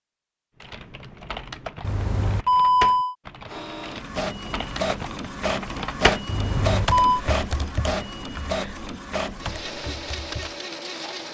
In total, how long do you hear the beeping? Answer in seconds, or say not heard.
2 s.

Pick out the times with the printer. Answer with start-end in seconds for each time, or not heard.
3.5-11.2.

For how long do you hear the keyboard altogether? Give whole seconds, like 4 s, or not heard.
10 s.